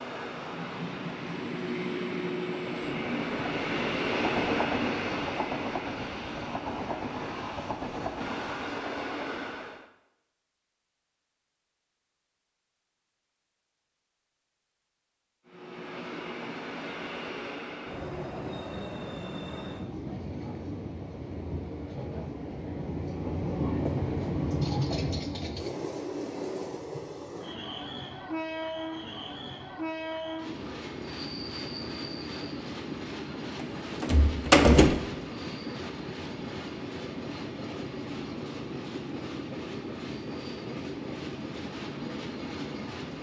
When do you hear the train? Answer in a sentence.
You can hear the train from 0.0 to 9.8 s and from 15.4 to 43.1 s.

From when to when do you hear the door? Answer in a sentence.
The door can be heard from 33.6 to 35.0 s.